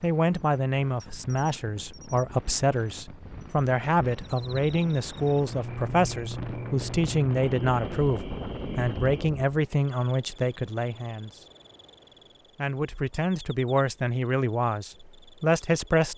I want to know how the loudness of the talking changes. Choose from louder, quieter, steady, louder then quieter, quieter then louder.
steady.